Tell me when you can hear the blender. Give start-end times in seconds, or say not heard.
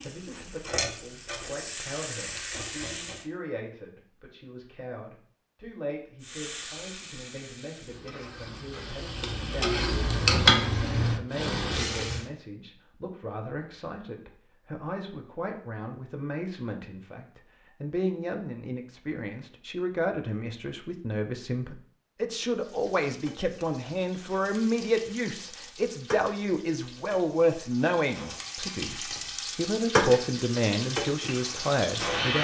not heard.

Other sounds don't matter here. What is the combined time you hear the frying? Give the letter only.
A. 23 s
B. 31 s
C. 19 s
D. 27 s
C.